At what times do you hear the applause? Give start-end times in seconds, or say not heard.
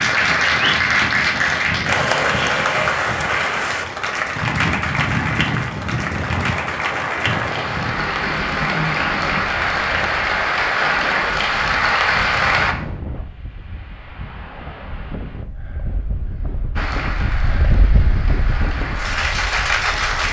0.0-12.8, 16.8-20.2.